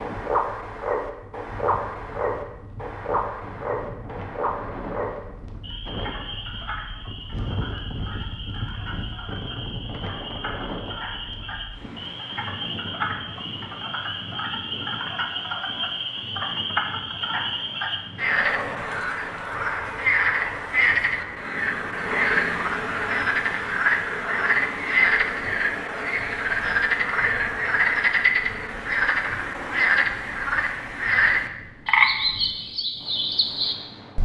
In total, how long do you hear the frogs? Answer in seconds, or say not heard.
34 s.